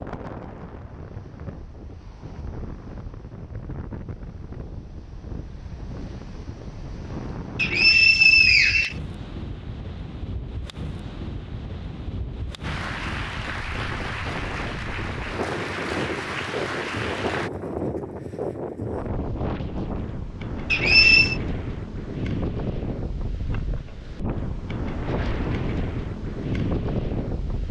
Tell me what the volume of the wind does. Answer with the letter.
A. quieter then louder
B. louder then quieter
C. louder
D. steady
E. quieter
C.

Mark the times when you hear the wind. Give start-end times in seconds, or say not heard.
0.0-27.6.